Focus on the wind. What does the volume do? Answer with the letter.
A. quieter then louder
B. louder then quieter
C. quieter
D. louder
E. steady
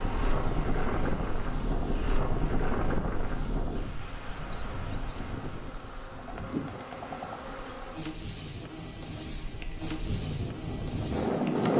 A.